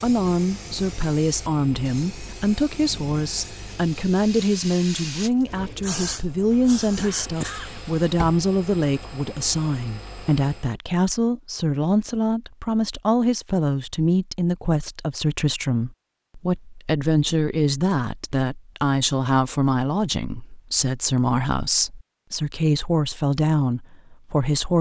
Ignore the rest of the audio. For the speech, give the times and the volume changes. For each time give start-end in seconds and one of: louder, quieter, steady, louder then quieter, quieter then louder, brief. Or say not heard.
0.0-24.7 steady.